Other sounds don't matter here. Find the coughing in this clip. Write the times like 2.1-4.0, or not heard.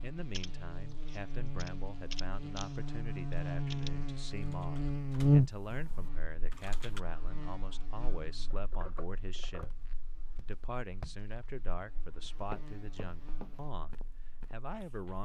not heard.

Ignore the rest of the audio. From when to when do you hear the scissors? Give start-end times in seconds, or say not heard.
8.5-9.8.